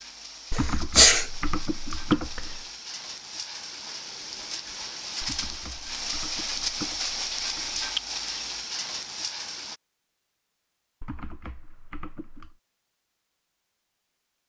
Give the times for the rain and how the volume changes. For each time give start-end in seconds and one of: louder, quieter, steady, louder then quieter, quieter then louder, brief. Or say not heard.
0.0-9.8 louder.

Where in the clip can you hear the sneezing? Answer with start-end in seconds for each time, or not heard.
0.6-1.2.